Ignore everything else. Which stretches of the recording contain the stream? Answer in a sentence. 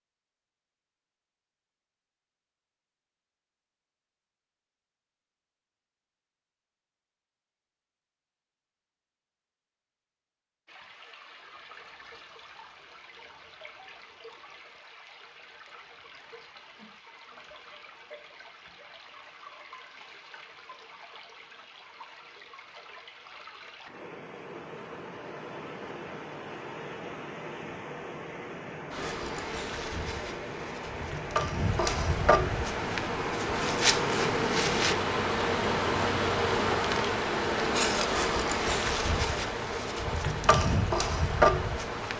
The stream can be heard from 10.7 to 42.1 s.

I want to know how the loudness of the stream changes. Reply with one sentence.
The loudness of the stream goes up.